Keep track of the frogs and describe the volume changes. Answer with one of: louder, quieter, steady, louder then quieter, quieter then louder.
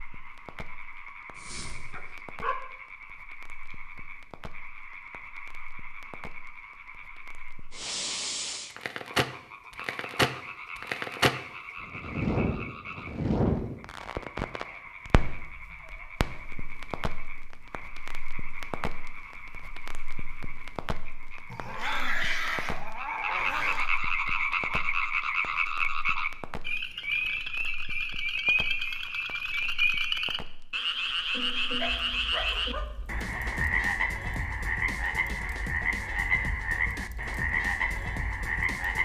louder.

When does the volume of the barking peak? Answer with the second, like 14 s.
22 s.